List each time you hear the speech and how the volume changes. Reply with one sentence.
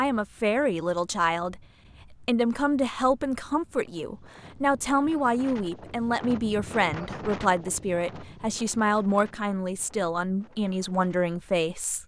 The speech can be heard from 0.0 to 12.0 s, at a steady volume.